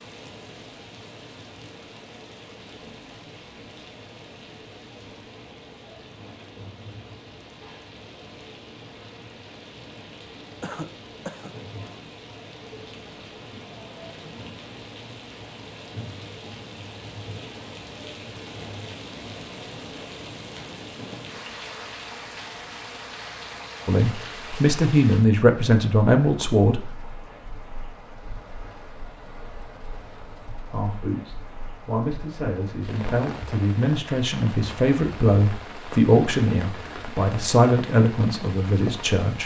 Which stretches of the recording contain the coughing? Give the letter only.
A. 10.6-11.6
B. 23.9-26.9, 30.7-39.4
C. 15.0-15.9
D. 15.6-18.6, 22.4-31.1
A.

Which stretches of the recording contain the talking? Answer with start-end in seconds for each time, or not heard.
23.9-26.9, 30.7-39.4.